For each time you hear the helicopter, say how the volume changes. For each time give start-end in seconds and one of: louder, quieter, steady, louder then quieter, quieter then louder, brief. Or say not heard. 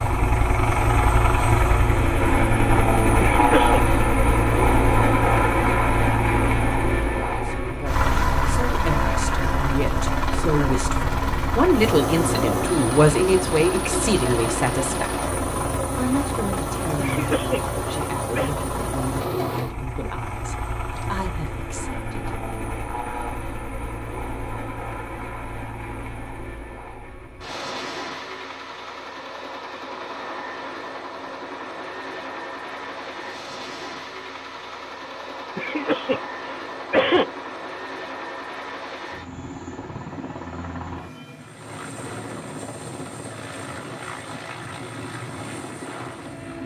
0.0-46.6 quieter.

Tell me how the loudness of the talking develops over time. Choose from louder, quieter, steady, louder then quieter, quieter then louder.
louder then quieter.